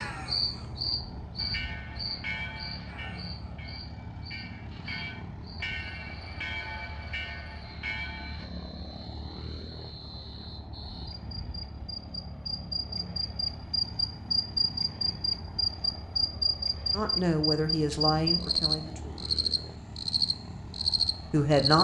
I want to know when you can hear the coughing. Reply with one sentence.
You can't hear the coughing here.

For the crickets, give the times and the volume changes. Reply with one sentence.
The crickets can be heard from 0.0 to 21.7 s, getting quieter then louder.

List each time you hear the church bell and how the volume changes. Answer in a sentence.
The church bell can be heard from 1.4 to 8.4 s, getting quieter then louder.